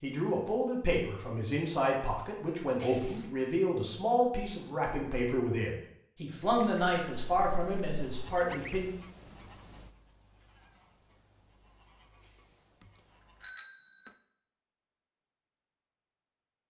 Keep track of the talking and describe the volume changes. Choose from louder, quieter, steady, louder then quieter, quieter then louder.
steady.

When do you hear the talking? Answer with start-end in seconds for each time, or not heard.
0.0-8.9.